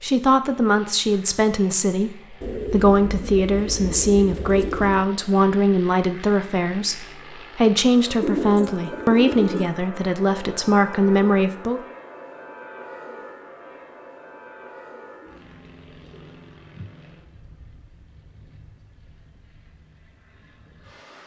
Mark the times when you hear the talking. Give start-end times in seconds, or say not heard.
0.0-11.8.